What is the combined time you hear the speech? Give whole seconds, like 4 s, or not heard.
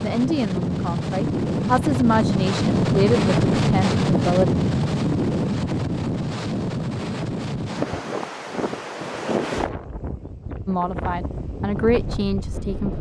7 s.